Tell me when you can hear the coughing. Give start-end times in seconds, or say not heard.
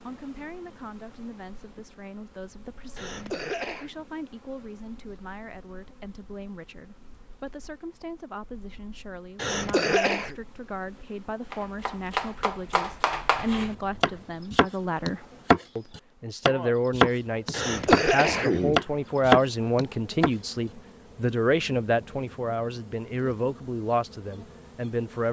3.0-3.9, 9.3-10.3, 17.5-18.8.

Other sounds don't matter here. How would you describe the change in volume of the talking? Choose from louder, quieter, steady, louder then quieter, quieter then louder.
louder.